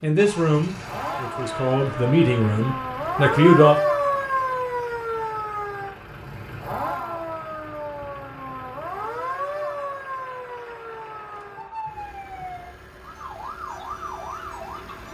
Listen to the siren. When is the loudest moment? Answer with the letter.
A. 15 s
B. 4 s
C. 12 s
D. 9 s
B.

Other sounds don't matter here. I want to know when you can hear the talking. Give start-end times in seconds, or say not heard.
0.0-3.8.